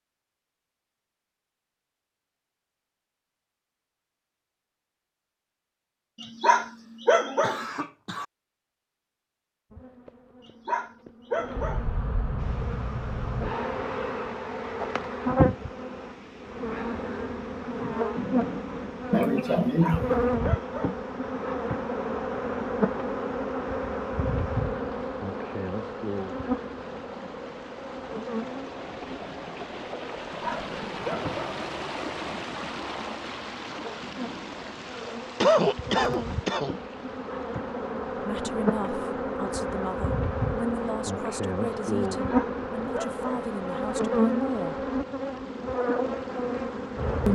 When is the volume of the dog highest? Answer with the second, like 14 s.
7 s.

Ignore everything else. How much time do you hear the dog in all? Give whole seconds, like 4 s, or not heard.
7 s.